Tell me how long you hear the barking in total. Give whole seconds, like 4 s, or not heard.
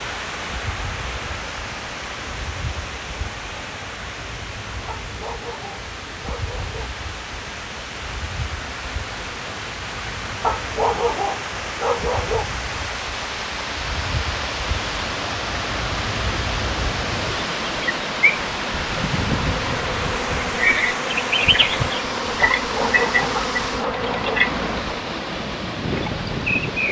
6 s.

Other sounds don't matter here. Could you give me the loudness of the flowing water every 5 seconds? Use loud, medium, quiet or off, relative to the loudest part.
medium, medium, loud, loud, loud, loud.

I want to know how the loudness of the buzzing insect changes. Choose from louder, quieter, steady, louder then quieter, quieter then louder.
louder.